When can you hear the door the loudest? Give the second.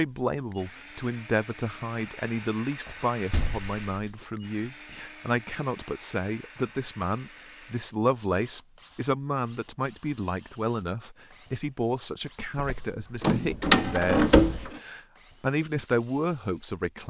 14 s.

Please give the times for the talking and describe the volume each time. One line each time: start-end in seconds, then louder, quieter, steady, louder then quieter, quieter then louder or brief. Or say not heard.
0.0-17.0 steady.